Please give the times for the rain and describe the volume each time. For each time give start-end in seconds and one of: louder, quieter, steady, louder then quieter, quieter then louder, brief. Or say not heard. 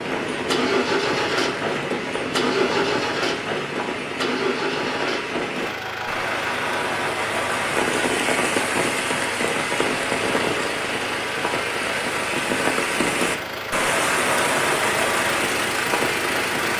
0.0-16.7 louder.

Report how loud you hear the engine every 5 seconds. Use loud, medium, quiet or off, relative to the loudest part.
loud, medium, medium, loud.